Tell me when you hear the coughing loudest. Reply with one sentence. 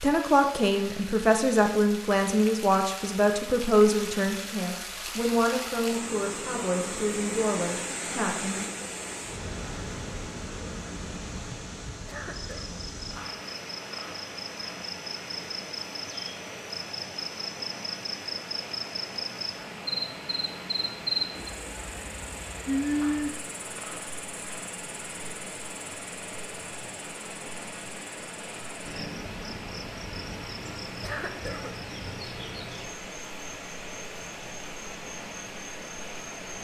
The loudest moment of the coughing is at 31 seconds.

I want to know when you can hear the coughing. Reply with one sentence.
The coughing can be heard from 12.1 to 12.7 s and from 31.0 to 31.7 s.